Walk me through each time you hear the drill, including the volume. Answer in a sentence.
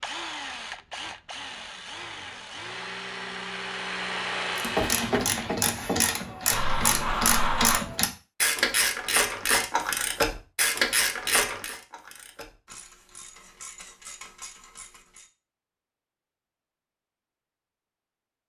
The drill can be heard from 0.0 to 5.6 s, getting louder.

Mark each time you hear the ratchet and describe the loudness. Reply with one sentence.
You can hear the ratchet from 4.5 to 15.3 s, getting quieter.